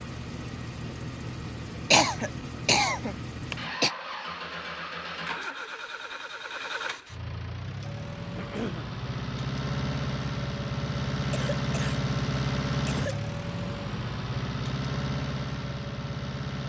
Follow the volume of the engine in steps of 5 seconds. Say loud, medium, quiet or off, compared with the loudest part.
medium, medium, loud, loud.